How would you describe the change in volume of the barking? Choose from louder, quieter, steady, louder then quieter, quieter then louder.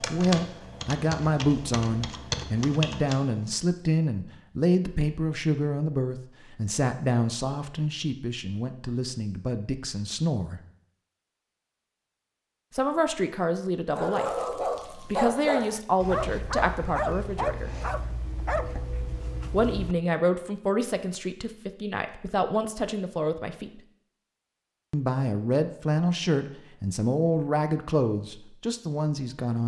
quieter.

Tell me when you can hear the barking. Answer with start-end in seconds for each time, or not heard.
13.9-20.1.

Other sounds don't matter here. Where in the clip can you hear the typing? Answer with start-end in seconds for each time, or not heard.
0.0-3.5.